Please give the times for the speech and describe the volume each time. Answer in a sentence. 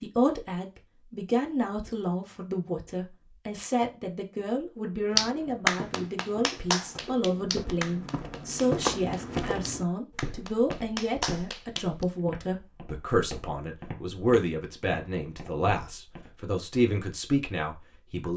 The speech can be heard from 0.0 to 18.3 s, at a steady volume.